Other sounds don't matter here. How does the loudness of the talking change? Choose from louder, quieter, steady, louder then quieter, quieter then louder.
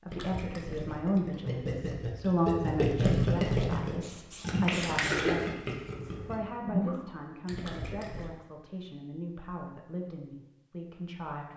quieter.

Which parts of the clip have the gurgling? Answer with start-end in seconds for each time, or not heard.
0.1-8.2.